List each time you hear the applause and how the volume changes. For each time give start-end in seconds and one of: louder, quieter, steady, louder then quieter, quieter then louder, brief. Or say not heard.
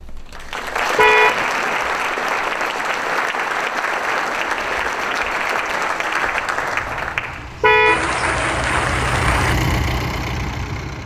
0.0-9.6 steady.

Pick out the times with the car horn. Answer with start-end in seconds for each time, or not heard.
0.9-1.4, 7.6-8.1.